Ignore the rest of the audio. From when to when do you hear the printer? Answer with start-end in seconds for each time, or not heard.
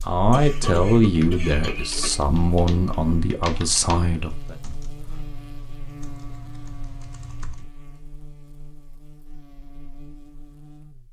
not heard.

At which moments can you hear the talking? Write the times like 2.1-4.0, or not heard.
0.0-4.5.